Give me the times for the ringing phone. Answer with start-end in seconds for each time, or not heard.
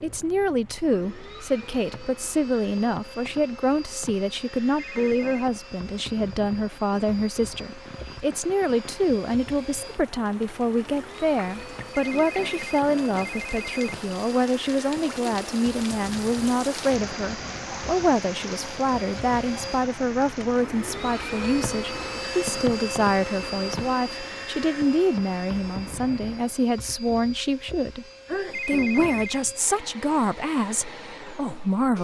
4.8-5.5, 11.9-13.9, 28.5-29.4.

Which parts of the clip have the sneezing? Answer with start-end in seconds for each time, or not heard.
28.2-28.8.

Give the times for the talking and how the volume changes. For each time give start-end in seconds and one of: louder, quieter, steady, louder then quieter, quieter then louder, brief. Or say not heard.
0.0-31.9 steady.